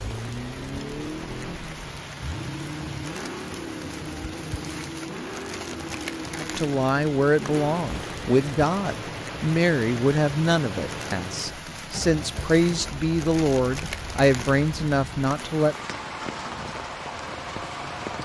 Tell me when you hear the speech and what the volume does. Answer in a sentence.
You can hear the speech from 6.3 to 15.8 s, at a steady volume.